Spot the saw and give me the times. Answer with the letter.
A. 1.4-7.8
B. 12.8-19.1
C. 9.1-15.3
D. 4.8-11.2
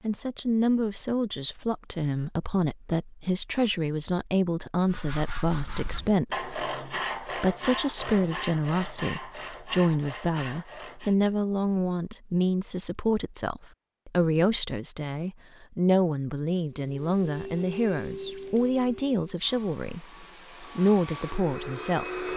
D.